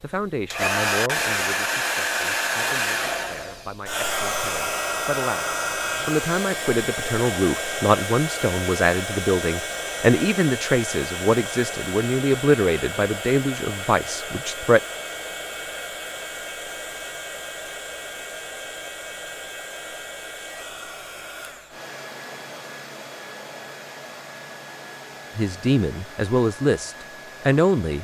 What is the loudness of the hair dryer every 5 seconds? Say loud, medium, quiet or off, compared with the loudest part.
loud, loud, medium, medium, quiet, quiet.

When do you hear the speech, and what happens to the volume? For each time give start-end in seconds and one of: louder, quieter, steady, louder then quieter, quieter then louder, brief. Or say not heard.
0.0-14.8 louder
25.4-27.9 brief.